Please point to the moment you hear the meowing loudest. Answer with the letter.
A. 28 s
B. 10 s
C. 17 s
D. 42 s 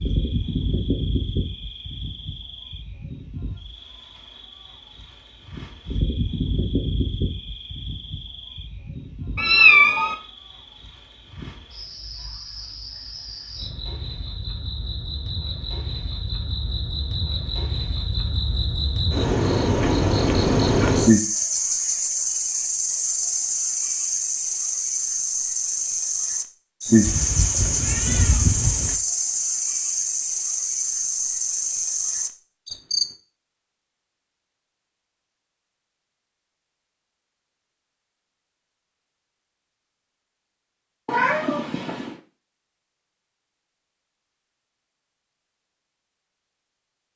B.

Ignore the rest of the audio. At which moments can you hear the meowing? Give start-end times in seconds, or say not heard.
9.3-10.2, 27.0-28.9, 41.0-42.1.